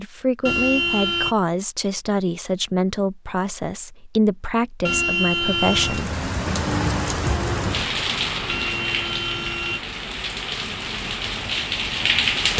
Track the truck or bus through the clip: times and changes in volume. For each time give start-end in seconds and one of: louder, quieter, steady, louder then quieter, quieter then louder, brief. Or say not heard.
not heard.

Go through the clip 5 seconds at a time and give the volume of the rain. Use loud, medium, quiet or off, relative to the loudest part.
off, loud, loud.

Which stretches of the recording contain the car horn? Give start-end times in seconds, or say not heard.
0.5-1.4, 4.8-6.0, 8.4-9.8.